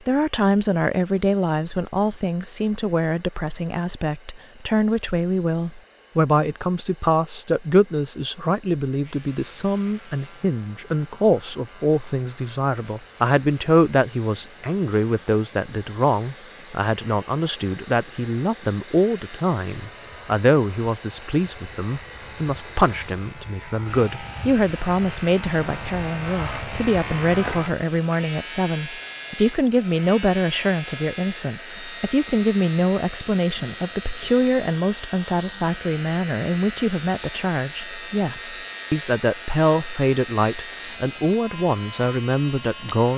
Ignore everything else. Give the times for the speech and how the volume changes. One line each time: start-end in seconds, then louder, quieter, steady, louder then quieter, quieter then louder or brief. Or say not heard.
0.1-43.1 steady.